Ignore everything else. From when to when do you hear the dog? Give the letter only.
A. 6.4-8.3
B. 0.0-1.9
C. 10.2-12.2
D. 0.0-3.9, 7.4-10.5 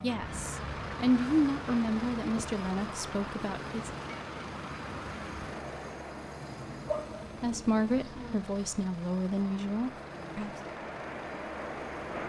A.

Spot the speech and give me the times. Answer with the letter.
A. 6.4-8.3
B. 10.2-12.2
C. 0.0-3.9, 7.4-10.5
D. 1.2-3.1
C.